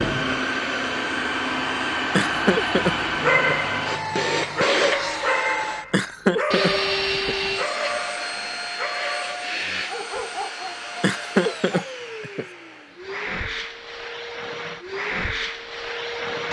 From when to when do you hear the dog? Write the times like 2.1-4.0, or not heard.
2.2-11.9.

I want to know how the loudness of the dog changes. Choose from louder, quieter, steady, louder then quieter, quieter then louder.
quieter.